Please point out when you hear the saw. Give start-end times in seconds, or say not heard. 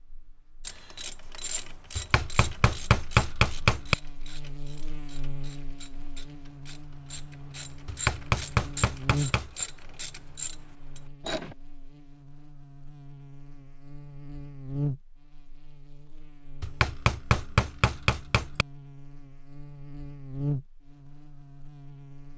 not heard.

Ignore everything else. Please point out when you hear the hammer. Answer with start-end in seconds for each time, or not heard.
1.9-4.0, 7.8-9.7, 16.6-18.6.